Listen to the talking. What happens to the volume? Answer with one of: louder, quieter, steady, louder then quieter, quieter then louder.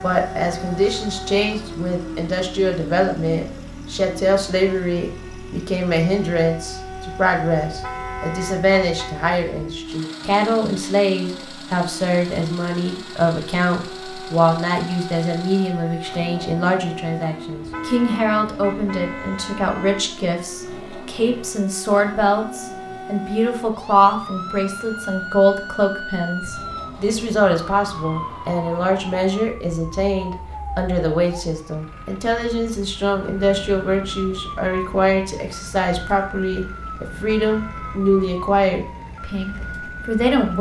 steady.